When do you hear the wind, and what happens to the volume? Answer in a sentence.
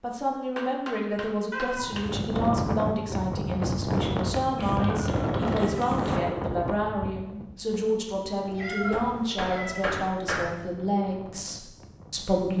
You can hear the wind from 1.8 to 12.5 s, getting quieter.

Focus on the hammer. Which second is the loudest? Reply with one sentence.
The loudest moment of the hammer is at 10 seconds.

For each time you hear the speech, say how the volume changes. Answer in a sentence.
The speech can be heard from 0.0 to 12.5 s, at a steady volume.